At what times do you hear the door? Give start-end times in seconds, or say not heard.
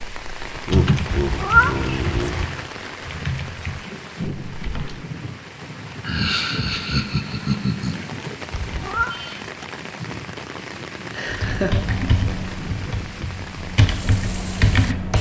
not heard.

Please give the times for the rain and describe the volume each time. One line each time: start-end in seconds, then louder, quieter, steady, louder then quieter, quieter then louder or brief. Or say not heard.
0.0-15.1 steady.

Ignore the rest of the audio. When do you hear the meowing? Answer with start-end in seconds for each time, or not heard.
1.1-2.5, 8.5-9.1.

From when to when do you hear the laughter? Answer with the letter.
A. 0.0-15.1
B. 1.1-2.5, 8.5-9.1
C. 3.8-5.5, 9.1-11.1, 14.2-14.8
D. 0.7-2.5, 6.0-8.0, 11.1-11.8
D.